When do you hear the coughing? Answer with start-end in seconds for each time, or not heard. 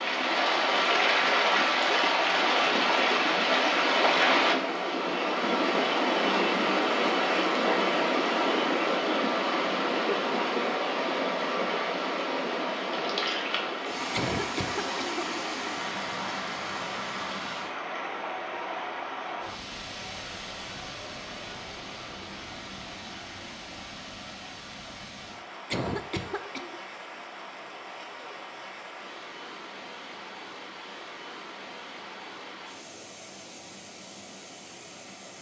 14.1-15.3, 25.7-26.8.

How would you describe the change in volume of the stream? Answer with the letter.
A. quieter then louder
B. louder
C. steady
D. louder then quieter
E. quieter
E.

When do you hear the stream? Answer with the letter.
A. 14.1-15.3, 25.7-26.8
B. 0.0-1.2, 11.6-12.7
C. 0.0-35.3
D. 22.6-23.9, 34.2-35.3
C.